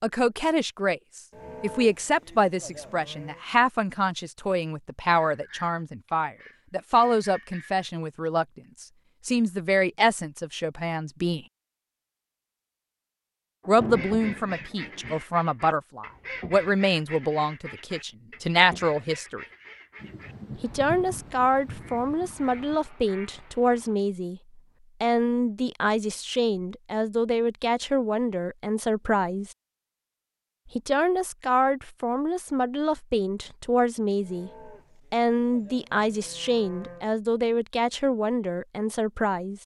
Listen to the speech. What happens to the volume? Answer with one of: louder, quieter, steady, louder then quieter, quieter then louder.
steady.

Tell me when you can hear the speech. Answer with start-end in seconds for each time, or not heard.
0.0-11.4, 13.7-19.4, 20.6-24.4, 25.0-29.5, 30.8-34.5, 35.1-39.6.